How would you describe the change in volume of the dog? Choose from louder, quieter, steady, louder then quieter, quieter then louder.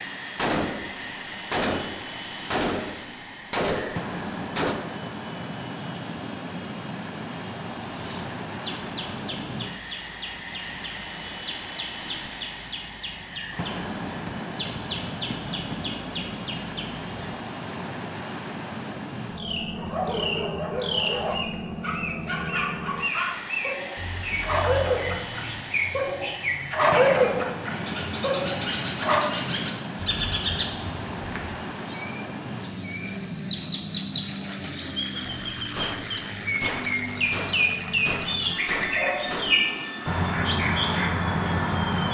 louder.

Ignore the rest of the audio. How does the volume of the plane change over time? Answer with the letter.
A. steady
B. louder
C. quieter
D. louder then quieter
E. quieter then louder
A.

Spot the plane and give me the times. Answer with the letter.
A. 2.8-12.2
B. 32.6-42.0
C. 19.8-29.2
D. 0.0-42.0
D.